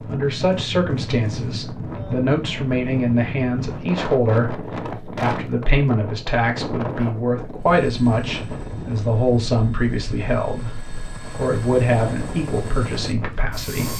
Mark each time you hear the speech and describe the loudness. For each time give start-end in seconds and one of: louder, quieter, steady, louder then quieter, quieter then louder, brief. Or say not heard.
0.1-13.9 steady.